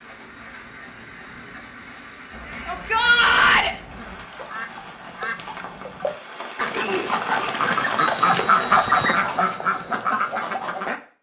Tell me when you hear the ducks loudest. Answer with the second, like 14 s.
9 s.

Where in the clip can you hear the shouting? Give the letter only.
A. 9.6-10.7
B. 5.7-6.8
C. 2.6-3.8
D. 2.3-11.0
C.